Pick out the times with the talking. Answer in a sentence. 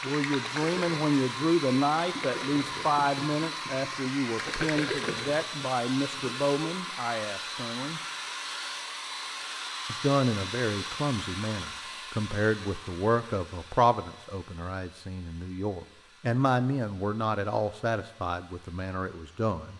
You can hear the talking from 0.0 to 8.0 s and from 9.8 to 19.7 s.